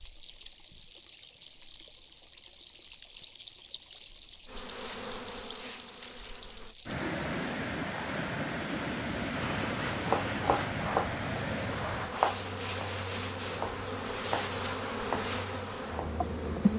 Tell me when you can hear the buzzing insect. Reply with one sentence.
The buzzing insect can be heard from 4.5 to 6.8 s and from 9.3 to 16.7 s.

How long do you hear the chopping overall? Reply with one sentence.
The chopping can be heard for 6 seconds in total.